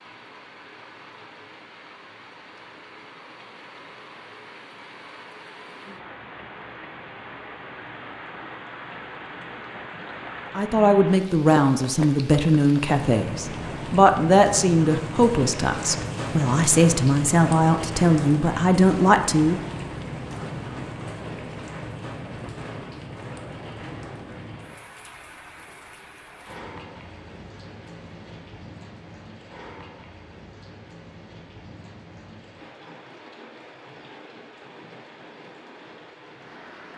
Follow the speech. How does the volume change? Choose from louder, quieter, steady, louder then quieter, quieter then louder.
steady.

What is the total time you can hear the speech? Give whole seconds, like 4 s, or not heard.
9 s.